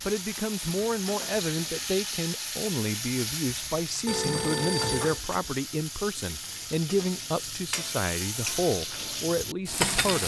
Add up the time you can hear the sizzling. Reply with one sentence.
The sizzling can be heard for 10 seconds in total.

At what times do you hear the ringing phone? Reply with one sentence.
You can hear the ringing phone from 4.0 to 5.2 s.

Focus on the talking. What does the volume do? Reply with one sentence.
The volume of the talking stays about the same.